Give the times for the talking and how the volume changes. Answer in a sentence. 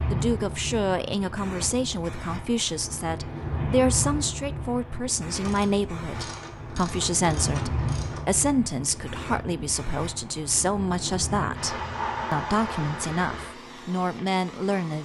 The talking can be heard from 0.1 to 15.0 s, at a steady volume.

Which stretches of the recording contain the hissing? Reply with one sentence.
You can hear the hissing from 0.0 to 15.0 s.